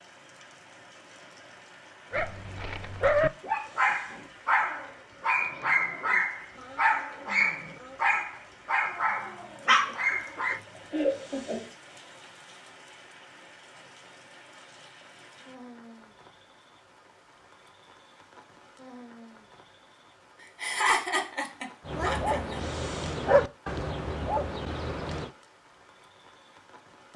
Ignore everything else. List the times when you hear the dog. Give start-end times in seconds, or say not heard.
2.1-10.6, 21.9-25.3.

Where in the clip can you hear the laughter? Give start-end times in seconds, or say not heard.
9.7-11.7, 20.6-22.6.